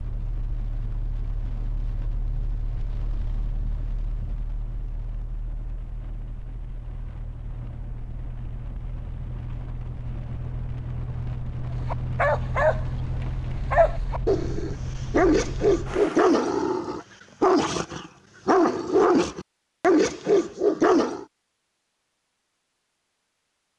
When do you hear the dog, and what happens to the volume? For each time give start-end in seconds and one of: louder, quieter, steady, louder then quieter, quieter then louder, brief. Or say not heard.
11.8-21.2 steady.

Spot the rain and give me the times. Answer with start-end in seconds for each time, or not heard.
0.0-16.4.